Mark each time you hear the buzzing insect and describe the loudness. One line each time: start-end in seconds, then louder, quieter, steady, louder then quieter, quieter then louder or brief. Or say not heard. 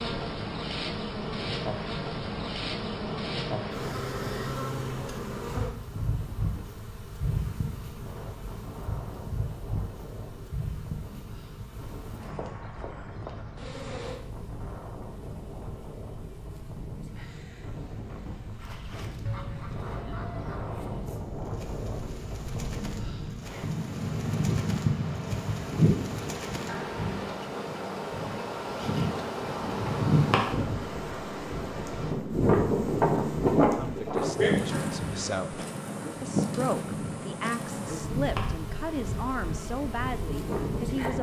0.0-41.1 quieter then louder.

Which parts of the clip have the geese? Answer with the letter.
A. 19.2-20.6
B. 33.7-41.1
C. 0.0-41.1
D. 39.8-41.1
A.